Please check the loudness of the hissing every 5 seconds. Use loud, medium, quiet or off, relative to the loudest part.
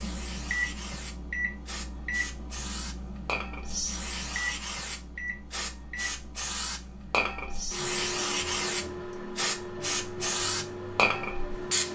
medium, loud, loud.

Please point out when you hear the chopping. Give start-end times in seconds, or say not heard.
not heard.